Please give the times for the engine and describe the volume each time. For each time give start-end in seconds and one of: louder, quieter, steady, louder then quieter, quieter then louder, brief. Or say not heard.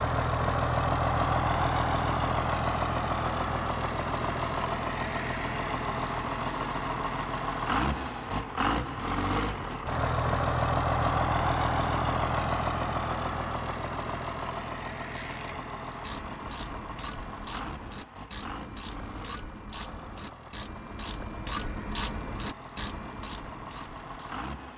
0.0-24.7 quieter.